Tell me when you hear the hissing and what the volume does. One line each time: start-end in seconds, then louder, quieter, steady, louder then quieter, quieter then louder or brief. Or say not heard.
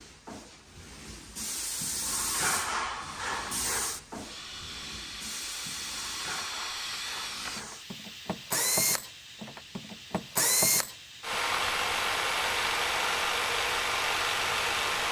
0.0-15.0 quieter.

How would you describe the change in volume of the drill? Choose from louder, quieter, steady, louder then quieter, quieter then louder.
louder.